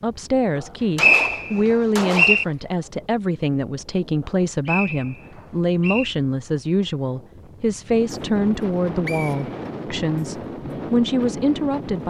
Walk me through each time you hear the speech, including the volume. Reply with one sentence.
The speech can be heard from 0.0 to 12.0 s, at a steady volume.